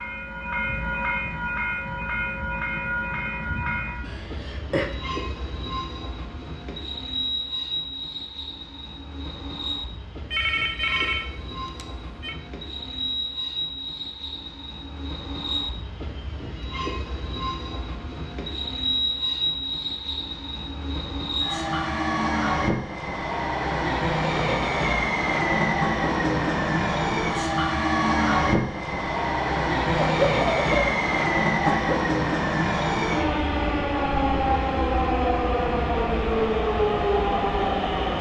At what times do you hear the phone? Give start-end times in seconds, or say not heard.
10.3-12.3.